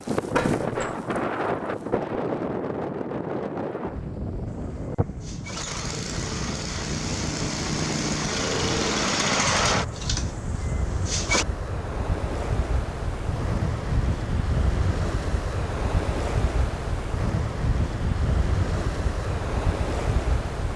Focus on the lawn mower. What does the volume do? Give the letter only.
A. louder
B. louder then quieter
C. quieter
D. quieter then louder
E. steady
B.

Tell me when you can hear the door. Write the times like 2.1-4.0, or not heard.
0.3-0.9.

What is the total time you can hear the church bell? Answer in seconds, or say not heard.
not heard.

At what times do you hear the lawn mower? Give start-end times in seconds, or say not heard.
4.5-11.4.